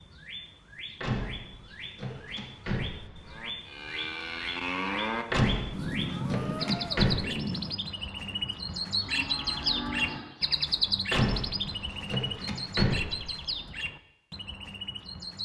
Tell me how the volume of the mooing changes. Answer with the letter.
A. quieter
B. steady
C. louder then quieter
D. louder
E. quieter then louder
E.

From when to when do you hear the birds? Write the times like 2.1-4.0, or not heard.
0.0-15.4.